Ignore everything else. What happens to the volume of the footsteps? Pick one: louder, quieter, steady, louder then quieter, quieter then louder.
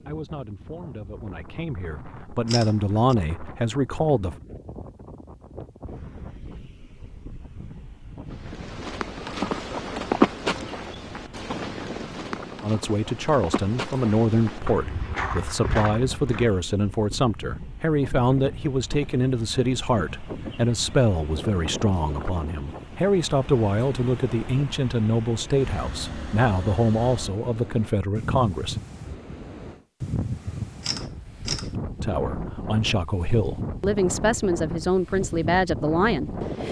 quieter then louder.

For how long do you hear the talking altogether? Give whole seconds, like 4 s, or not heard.
25 s.